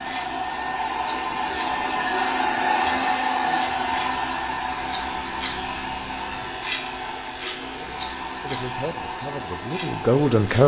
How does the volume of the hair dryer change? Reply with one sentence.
The volume of the hair dryer goes down.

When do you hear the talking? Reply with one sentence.
You can hear the talking from 8.4 to 10.6 s.